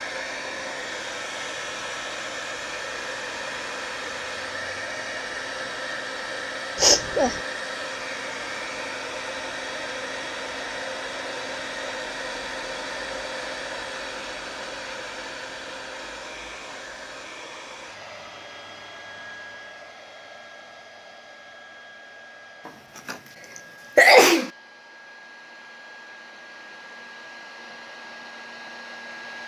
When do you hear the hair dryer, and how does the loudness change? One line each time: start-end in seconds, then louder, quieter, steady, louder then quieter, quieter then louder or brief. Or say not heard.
0.0-29.4 quieter.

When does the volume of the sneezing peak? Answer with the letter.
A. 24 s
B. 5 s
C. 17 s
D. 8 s
A.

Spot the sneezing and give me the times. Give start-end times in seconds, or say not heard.
6.8-7.4, 22.6-23.1, 23.9-24.5.